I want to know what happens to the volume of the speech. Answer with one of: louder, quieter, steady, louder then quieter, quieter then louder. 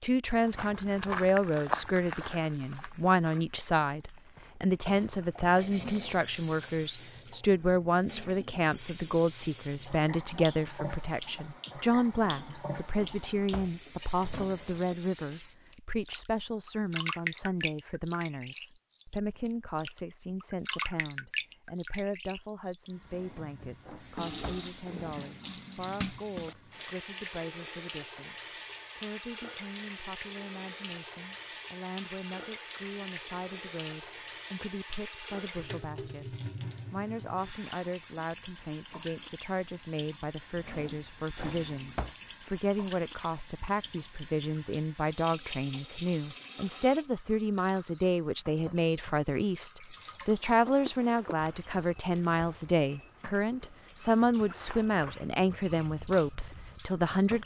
quieter then louder.